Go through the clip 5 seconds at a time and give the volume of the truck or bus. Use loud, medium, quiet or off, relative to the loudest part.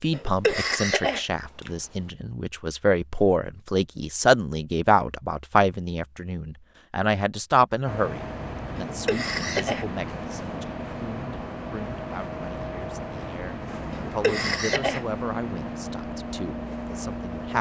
off, loud, loud, loud.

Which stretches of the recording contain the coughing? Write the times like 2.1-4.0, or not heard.
0.1-1.7, 8.8-9.8, 13.9-15.1.